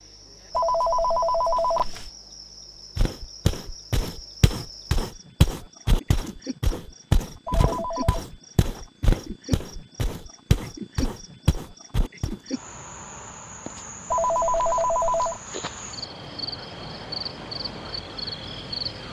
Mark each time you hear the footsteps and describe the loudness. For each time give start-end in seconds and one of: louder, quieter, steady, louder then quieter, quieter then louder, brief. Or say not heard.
3.0-12.3 steady.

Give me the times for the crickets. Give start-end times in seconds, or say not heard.
0.0-19.0.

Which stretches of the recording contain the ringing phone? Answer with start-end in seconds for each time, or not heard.
0.5-2.1, 7.5-8.2, 14.1-15.4.